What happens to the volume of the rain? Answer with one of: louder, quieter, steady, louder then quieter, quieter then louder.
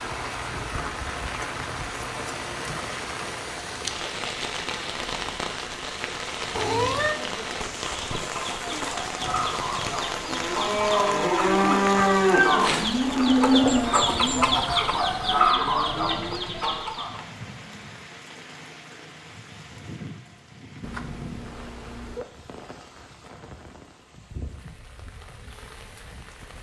quieter.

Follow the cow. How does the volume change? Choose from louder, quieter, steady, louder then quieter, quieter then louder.
quieter.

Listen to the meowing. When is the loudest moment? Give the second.
7 s.